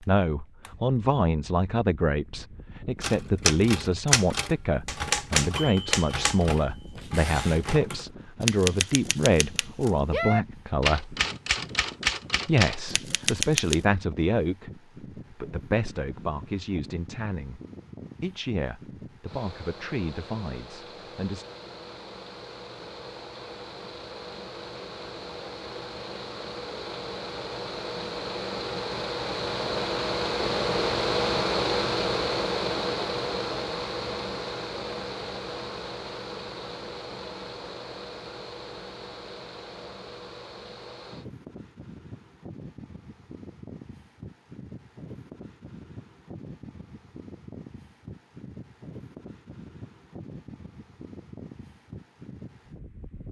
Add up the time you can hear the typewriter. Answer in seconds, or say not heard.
11 s.